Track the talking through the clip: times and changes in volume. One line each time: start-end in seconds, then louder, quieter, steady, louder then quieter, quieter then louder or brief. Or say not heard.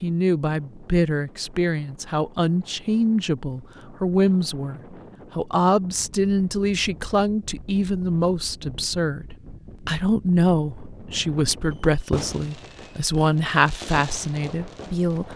0.0-15.3 steady.